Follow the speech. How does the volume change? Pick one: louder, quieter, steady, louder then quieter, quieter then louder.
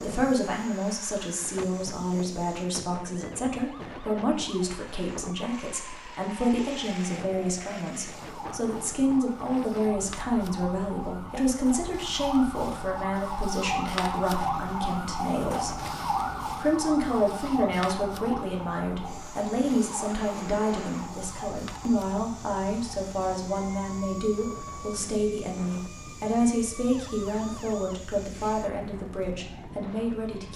steady.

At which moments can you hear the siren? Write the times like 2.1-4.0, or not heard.
3.0-30.5.